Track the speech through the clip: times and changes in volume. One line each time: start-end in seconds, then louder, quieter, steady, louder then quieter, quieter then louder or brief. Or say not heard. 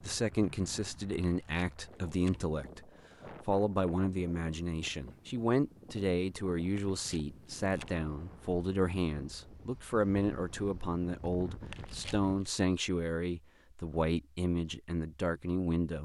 0.0-16.0 steady.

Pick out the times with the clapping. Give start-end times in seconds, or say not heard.
not heard.